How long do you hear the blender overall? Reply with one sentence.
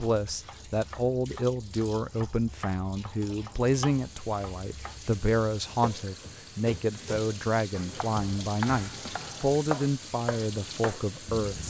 The blender can't be heard in this clip.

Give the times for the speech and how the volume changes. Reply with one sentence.
The speech can be heard from 0.0 to 11.6 s, at a steady volume.